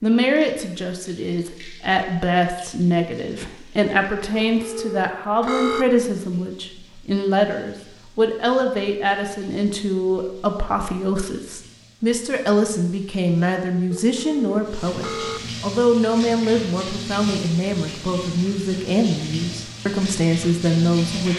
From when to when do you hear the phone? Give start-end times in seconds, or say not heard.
4.3-5.8, 13.9-15.4.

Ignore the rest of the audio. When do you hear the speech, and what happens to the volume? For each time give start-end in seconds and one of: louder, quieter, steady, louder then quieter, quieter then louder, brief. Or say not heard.
0.0-21.3 steady.